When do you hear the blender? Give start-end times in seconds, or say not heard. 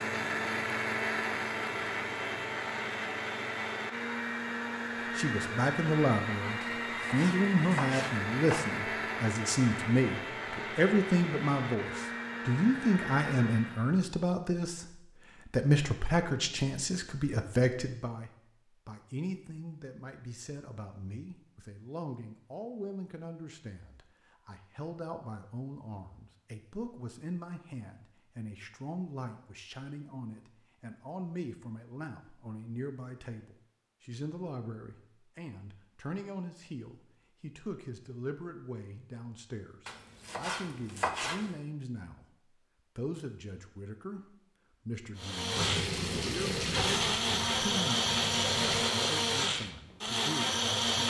0.0-13.9, 45.1-51.0.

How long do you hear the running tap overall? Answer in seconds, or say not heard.
3 s.